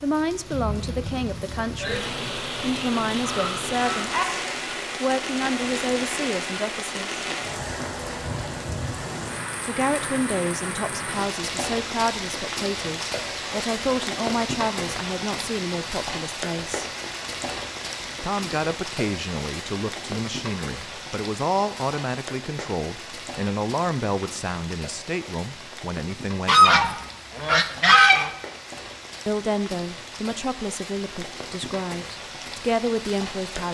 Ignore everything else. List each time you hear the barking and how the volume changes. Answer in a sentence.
The barking can't be heard in this clip.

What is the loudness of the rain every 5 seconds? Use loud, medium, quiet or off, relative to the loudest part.
loud, loud, loud, loud, medium, medium, medium.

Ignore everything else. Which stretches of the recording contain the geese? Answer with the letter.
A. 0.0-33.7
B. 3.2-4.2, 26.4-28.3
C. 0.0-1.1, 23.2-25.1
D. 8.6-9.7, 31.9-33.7
B.